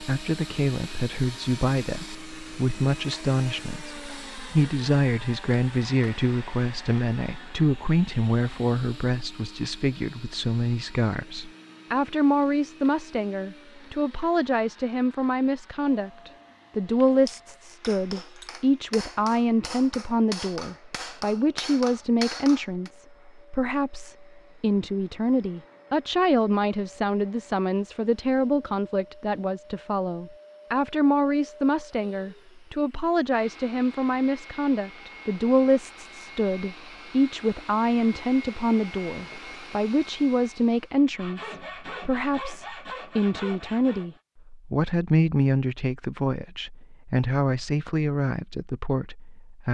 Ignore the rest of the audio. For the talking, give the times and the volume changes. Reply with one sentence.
The talking can be heard from 0.0 to 49.6 s, at a steady volume.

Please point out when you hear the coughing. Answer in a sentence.
You can't hear the coughing here.